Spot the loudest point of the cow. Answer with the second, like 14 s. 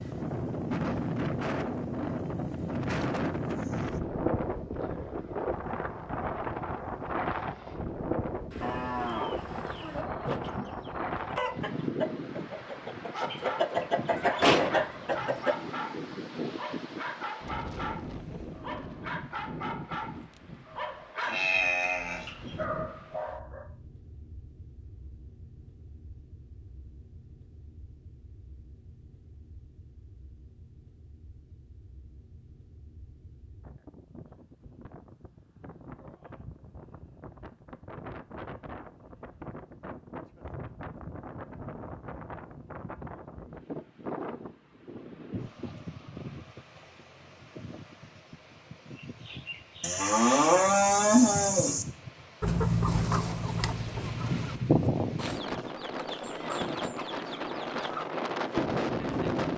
51 s.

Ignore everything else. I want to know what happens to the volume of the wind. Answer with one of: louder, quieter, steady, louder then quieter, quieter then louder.
quieter then louder.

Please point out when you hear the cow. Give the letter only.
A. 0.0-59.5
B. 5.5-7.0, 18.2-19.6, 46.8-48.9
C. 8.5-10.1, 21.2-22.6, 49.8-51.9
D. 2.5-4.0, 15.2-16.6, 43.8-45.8
C.